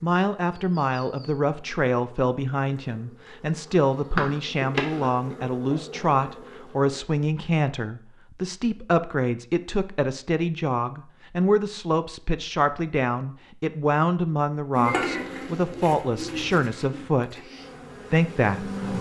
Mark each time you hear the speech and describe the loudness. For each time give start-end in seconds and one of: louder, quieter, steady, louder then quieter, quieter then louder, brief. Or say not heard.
0.0-17.4 steady
18.1-18.9 brief.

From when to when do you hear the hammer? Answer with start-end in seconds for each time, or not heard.
not heard.